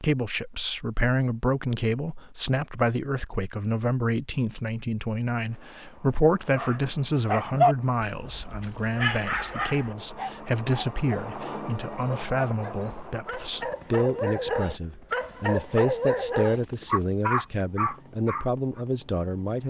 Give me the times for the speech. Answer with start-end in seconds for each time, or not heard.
0.0-19.6.